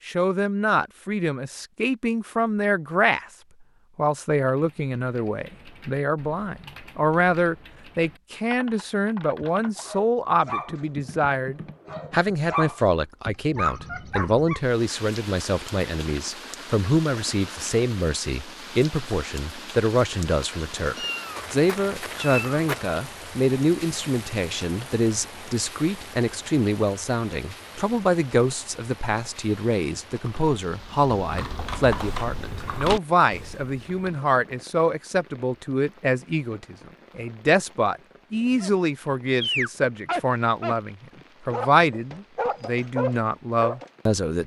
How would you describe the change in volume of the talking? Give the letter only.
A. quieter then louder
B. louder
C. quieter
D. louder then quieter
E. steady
E.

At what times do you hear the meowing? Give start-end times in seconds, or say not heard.
20.9-22.9.